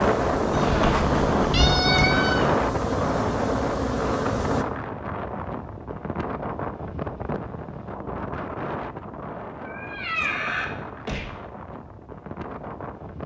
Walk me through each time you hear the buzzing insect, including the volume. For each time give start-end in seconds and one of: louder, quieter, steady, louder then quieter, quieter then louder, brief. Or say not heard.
0.0-4.7 steady.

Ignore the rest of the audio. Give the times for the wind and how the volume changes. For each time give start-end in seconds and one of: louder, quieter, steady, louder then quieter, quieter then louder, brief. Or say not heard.
0.0-13.2 quieter.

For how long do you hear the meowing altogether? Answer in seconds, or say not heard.
4 s.